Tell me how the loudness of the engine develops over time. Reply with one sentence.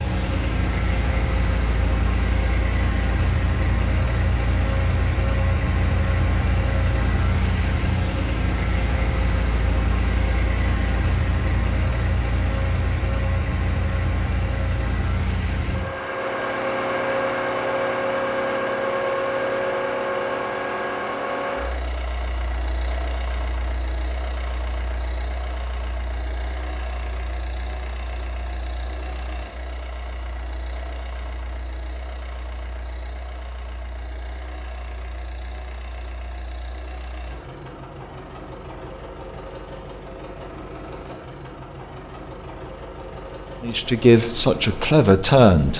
The loudness of the engine goes down.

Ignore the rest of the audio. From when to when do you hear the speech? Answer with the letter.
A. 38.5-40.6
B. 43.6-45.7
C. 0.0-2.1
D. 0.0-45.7
B.